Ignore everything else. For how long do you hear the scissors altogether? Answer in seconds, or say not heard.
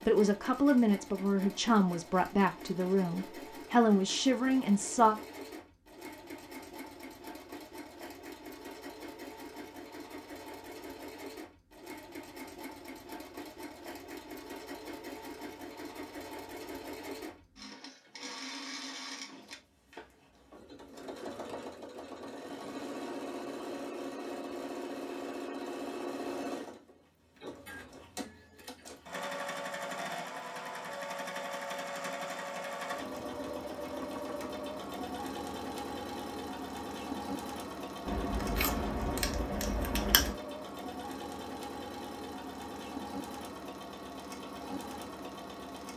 2 s.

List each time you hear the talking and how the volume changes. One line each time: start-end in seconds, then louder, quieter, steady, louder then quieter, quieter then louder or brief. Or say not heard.
0.1-5.2 steady.